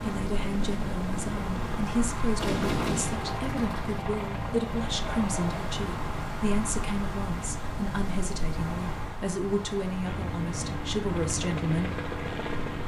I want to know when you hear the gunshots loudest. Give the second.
3 s.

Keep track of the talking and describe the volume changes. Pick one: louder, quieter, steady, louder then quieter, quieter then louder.
steady.